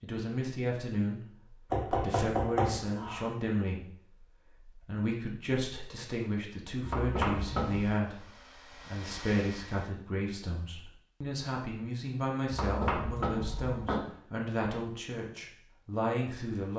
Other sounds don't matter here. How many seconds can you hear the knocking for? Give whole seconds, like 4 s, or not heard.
4 s.